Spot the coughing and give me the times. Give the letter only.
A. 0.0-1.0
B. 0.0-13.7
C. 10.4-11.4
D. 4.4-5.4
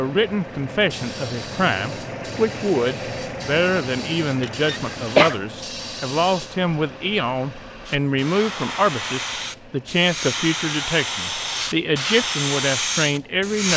D.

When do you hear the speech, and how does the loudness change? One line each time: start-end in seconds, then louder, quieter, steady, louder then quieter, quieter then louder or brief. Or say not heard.
0.0-13.7 steady.